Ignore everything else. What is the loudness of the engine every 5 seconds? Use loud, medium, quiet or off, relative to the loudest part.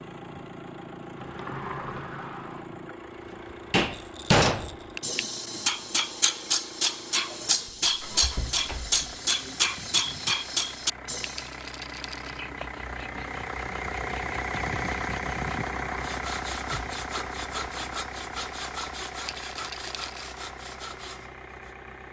medium, medium, loud, loud, medium.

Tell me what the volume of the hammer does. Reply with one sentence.
The loudness of the hammer stays about the same.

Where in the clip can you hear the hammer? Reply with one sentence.
You can hear the hammer from 3.7 to 11.6 s.